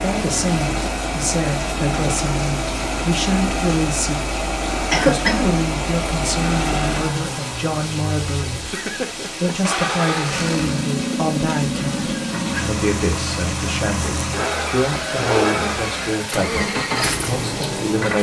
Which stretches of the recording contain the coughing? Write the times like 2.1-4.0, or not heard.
4.9-5.5.